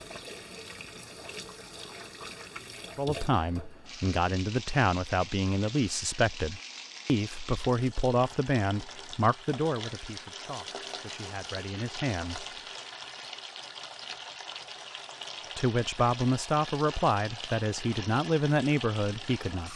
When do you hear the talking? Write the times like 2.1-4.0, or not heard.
3.0-12.4, 15.6-19.7.